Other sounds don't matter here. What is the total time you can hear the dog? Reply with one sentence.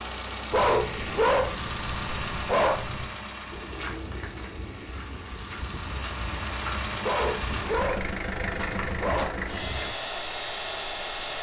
The dog can be heard for 5 seconds in total.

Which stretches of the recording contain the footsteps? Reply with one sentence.
The footsteps can be heard from 3.5 to 9.9 s.